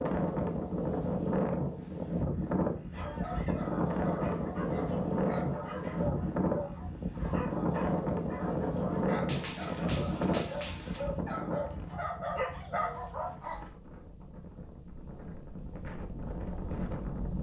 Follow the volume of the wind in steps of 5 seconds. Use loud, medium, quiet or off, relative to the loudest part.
loud, loud, medium, medium.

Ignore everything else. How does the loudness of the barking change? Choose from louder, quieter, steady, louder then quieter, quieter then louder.
louder.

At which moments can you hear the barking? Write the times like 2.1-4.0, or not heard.
2.9-13.7.